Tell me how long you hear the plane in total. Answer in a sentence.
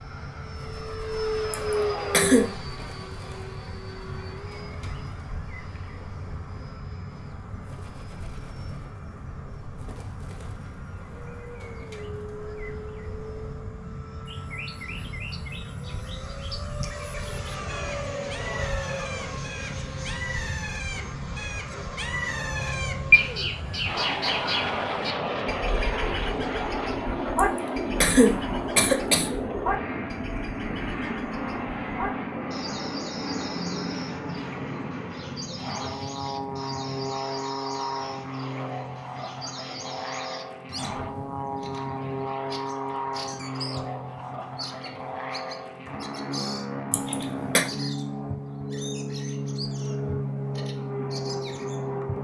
You can hear the plane for 52 seconds altogether.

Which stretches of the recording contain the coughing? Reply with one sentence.
You can hear the coughing from 1.5 to 2.5 s, from 27.4 to 29.3 s and from 46.9 to 47.6 s.